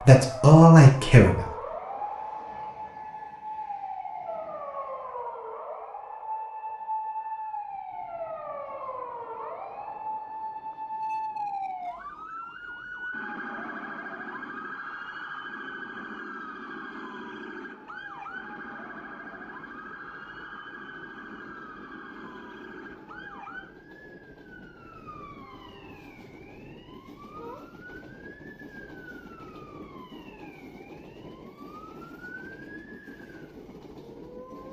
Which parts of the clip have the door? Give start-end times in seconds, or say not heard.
not heard.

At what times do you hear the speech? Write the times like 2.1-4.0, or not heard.
0.0-1.4.